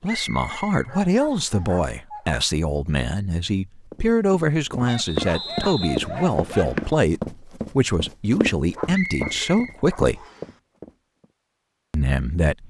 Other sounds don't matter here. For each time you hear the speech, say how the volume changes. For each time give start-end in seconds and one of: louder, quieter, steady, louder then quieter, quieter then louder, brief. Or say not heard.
0.0-10.2 steady
11.9-12.6 brief.